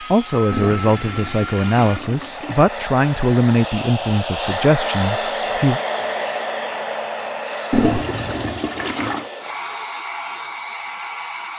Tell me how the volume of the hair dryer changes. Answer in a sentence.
The loudness of the hair dryer goes up, then down.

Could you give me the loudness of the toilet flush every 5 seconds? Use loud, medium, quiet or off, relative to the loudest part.
medium, loud, off.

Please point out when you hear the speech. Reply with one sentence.
You can hear the speech from 0.1 to 5.8 s.